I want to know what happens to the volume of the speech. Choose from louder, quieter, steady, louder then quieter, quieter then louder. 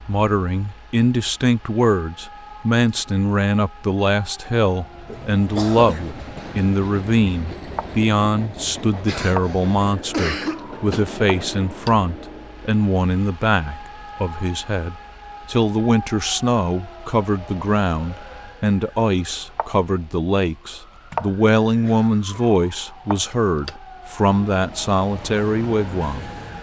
steady.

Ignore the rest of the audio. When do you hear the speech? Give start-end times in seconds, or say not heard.
0.1-26.3.